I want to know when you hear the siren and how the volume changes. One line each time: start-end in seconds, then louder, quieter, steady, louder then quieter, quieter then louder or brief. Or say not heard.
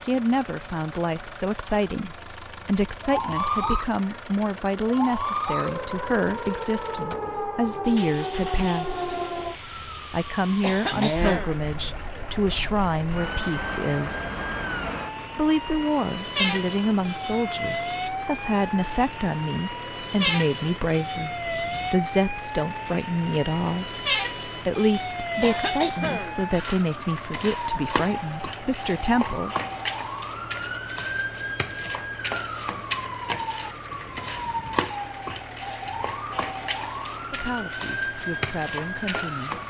3.0-39.6 steady.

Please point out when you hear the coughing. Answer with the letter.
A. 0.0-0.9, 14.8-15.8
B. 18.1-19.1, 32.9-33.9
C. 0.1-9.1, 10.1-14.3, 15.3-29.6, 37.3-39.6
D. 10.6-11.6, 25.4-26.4
D.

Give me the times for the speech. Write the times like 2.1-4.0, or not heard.
0.1-9.1, 10.1-14.3, 15.3-29.6, 37.3-39.6.